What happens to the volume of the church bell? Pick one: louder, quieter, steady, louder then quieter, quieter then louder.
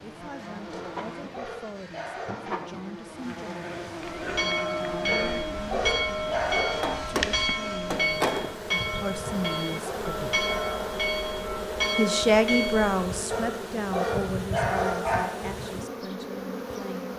steady.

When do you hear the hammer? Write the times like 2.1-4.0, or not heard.
6.8-8.6.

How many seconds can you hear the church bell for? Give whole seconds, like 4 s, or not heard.
9 s.